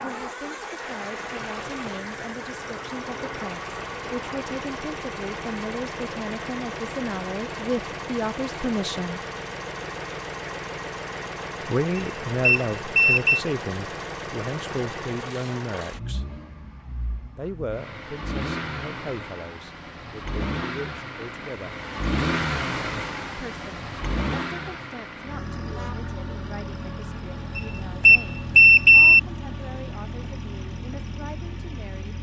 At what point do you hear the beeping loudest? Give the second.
29 s.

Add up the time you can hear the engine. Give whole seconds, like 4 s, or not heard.
32 s.